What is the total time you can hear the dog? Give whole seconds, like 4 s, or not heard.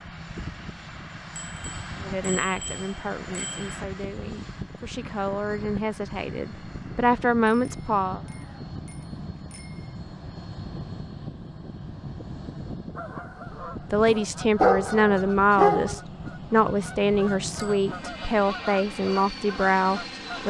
2 s.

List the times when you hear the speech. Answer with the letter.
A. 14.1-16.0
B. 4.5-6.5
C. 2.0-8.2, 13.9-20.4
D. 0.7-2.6
C.